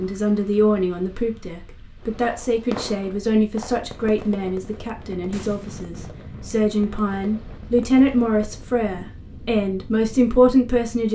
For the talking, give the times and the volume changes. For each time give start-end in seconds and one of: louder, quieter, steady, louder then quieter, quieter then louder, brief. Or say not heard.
0.0-11.0 quieter then louder.